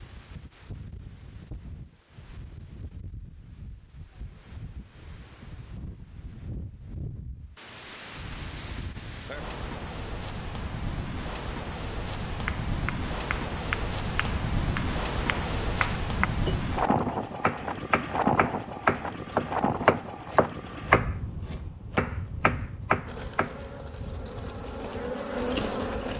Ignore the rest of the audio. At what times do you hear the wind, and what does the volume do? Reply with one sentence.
The wind can be heard from 0.0 to 26.1 s, getting louder then quieter.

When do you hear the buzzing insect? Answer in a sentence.
You can hear the buzzing insect from 23.1 to 26.1 s.